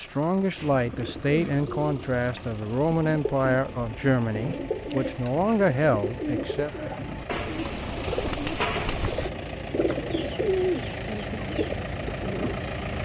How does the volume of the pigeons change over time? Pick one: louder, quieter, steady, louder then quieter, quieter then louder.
louder.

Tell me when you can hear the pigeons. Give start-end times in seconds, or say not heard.
0.6-12.6.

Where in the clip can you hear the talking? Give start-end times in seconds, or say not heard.
0.0-6.7.